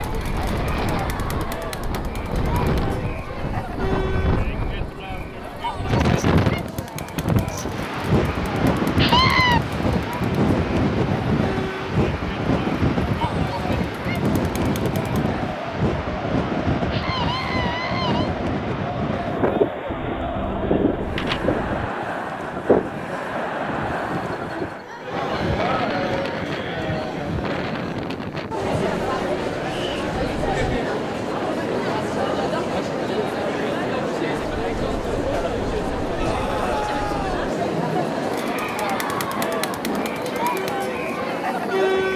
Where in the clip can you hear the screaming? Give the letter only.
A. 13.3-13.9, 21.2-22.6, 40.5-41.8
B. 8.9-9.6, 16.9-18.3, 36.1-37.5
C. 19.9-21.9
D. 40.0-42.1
B.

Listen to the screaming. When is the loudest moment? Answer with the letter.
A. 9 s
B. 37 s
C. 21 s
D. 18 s
A.